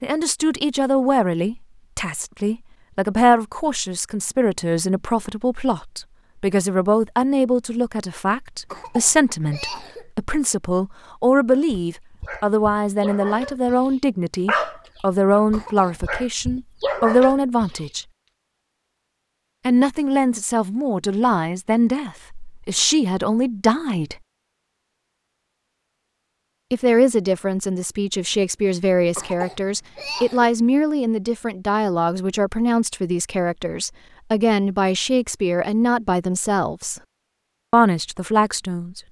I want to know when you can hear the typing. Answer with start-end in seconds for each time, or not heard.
not heard.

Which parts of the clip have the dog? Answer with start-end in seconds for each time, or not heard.
11.5-17.9.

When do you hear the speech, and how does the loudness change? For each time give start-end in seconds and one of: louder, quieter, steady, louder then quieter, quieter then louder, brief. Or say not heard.
0.0-18.1 steady
19.6-24.1 steady
26.7-37.0 steady
37.7-39.0 brief.